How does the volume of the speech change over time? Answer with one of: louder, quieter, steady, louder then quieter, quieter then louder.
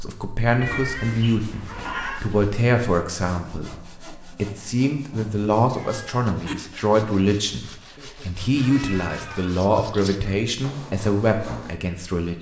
steady.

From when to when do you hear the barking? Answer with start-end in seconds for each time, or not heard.
not heard.